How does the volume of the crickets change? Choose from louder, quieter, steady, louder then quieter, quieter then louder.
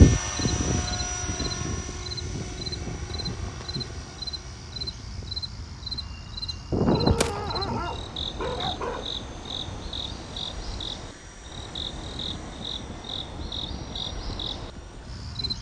steady.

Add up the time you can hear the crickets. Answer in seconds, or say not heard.
15 s.